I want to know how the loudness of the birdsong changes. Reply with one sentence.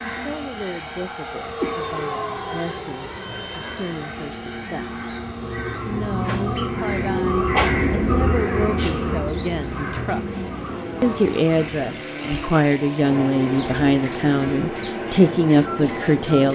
The volume of the birdsong goes up, then down.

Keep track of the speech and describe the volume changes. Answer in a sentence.
The loudness of the speech goes up.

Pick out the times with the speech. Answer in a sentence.
The speech can be heard from 0.2 to 5.0 s and from 5.8 to 16.5 s.